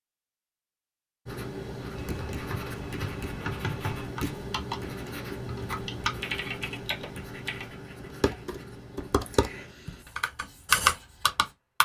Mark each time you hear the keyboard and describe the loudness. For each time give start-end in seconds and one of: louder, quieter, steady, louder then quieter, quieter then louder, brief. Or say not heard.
1.9-11.8 louder.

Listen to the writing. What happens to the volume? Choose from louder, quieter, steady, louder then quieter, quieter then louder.
quieter.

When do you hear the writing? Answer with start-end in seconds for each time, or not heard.
1.2-11.6.